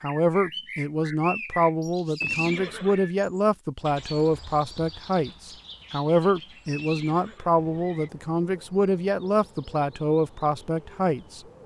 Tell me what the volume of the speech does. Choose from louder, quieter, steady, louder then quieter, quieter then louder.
steady.